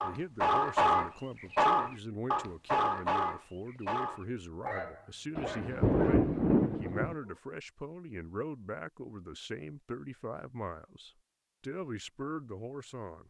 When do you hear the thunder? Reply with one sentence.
The thunder can be heard from 5.3 to 7.2 s.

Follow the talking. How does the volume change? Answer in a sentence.
The loudness of the talking stays about the same.